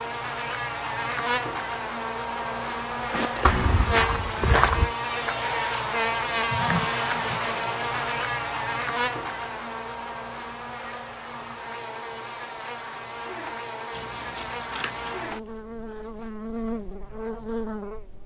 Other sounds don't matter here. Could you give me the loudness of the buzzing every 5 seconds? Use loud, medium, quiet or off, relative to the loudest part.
loud, loud, medium, medium.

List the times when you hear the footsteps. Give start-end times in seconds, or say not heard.
3.1-4.9.